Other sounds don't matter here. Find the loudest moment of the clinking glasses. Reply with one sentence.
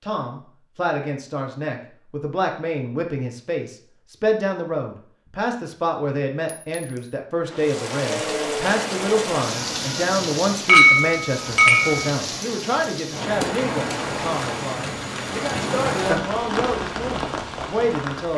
The volume of the clinking glasses peaks at 11 seconds.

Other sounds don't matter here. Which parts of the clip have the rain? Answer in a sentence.
You can hear the rain from 7.5 to 18.3 s.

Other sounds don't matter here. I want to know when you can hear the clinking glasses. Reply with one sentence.
You can hear the clinking glasses from 6.5 to 7.0 s and from 10.7 to 12.1 s.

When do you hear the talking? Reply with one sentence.
The talking can be heard from 0.0 to 18.3 s.